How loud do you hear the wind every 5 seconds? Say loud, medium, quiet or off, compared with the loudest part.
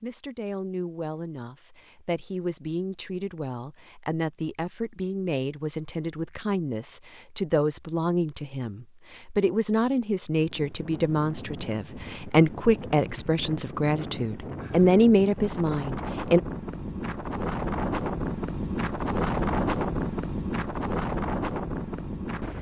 off, off, medium, loud, loud.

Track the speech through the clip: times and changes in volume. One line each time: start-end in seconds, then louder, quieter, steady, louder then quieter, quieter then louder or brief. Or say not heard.
0.0-16.4 louder.